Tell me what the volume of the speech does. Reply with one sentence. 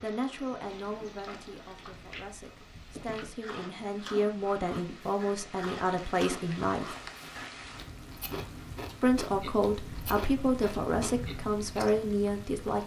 The loudness of the speech goes up.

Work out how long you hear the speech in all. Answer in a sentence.
The speech can be heard for 11 seconds in total.